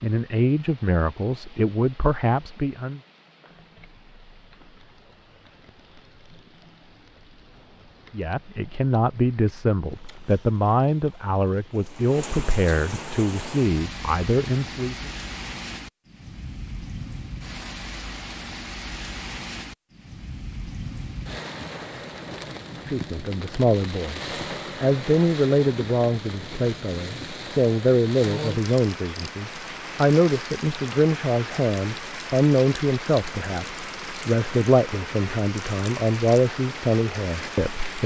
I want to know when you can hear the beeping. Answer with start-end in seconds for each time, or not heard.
not heard.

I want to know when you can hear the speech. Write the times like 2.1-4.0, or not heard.
0.0-3.0, 8.1-15.1, 22.9-38.0.